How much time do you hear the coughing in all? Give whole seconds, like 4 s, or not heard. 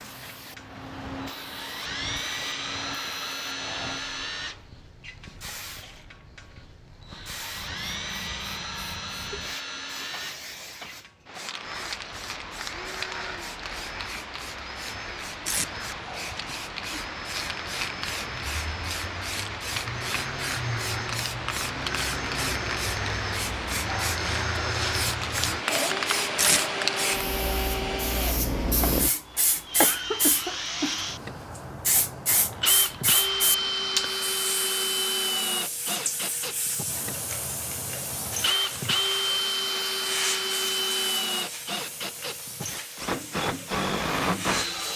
2 s.